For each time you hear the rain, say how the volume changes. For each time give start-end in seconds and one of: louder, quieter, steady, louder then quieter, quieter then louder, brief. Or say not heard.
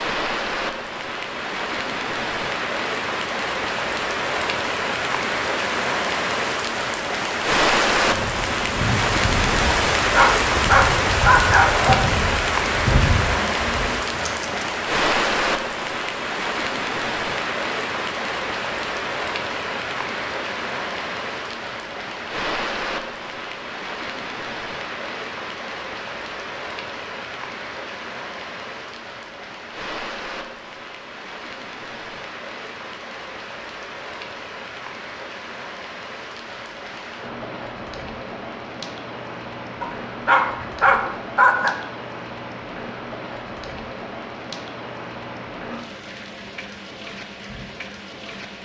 0.0-48.6 quieter.